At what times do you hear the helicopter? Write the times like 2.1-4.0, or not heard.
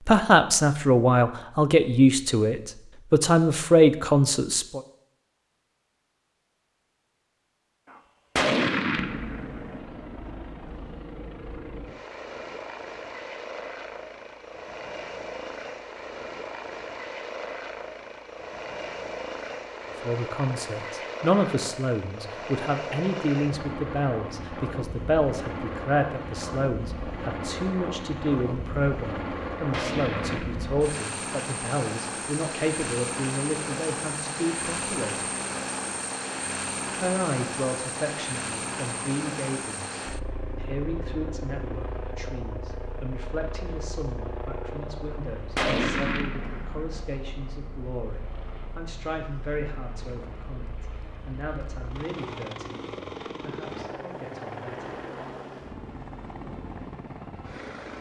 8.8-57.9.